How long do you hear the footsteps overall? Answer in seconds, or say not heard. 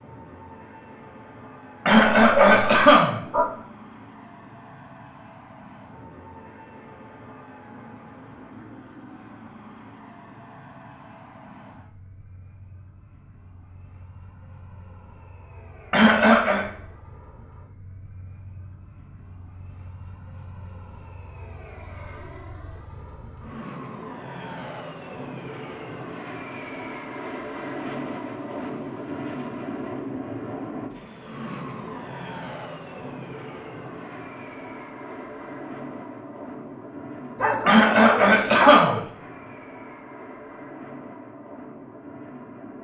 not heard.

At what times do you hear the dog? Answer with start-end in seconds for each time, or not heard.
1.9-3.5, 37.4-39.1.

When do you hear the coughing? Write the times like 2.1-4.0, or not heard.
1.9-3.2, 15.9-16.6, 37.6-39.0.